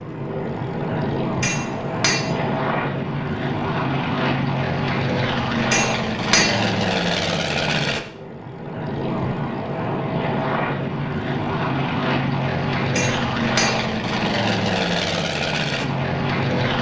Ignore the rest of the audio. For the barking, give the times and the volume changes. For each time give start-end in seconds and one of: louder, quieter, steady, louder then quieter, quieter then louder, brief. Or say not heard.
not heard.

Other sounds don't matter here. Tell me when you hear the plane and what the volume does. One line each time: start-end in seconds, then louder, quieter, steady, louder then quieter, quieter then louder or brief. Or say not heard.
0.0-16.7 steady.